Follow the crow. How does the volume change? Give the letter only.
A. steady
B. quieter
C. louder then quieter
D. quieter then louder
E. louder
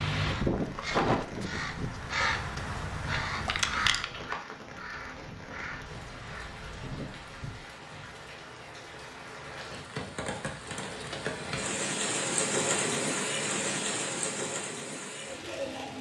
B.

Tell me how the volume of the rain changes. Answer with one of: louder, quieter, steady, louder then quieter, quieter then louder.
louder.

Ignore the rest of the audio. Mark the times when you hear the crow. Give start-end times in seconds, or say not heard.
0.0-8.1.